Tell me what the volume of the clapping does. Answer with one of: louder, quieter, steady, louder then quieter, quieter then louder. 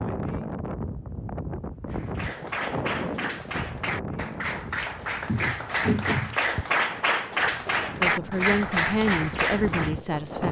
louder.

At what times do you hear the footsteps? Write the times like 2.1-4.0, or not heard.
5.2-6.7.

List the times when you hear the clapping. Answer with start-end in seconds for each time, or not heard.
1.9-9.9.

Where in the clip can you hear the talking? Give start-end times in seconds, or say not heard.
8.0-10.4.